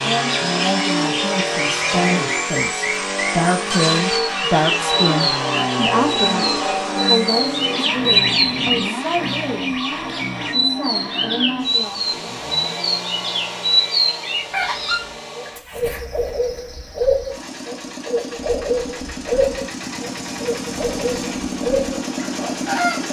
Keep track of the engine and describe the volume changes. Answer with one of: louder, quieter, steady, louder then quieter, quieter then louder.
quieter then louder.